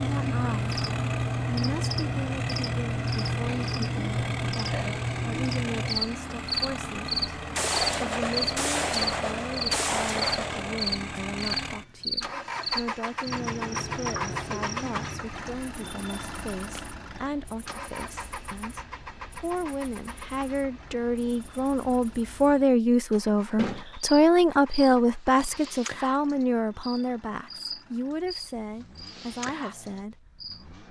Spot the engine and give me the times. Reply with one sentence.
The engine can be heard from 0.0 to 30.8 s.